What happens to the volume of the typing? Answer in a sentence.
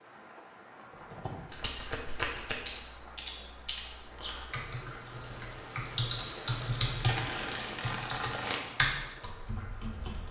The loudness of the typing goes up.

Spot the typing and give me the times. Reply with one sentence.
You can hear the typing from 0.9 to 10.2 s.